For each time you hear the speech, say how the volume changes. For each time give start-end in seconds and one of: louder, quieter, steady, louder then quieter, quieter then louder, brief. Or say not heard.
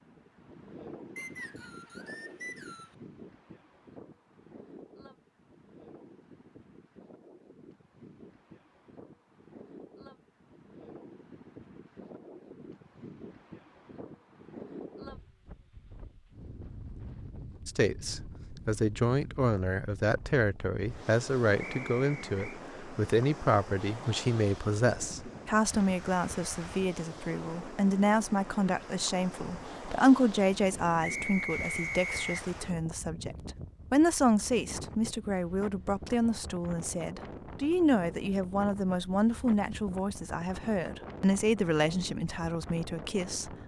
17.6-43.5 steady.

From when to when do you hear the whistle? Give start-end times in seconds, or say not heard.
1.1-3.0, 21.6-22.6, 31.0-32.5.